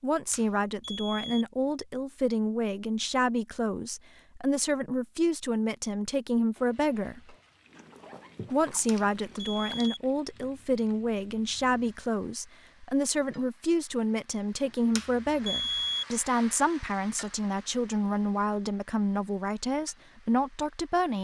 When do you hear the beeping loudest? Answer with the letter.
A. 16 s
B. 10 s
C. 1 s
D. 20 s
A.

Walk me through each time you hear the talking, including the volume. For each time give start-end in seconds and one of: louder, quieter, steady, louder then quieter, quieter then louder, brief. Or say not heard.
0.0-7.3 steady
8.5-21.2 steady.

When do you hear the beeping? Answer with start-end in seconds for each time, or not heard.
0.3-1.4, 8.8-10.0, 14.9-16.1.